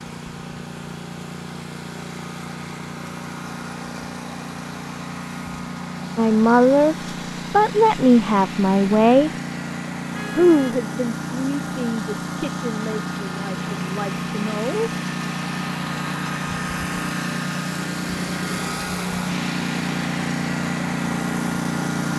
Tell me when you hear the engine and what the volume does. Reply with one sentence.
The engine can be heard from 0.0 to 22.1 s, getting louder.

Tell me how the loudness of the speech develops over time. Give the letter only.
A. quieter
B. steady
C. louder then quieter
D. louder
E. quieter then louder
A.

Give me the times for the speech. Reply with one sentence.
The speech can be heard from 6.2 to 9.3 s and from 10.3 to 14.9 s.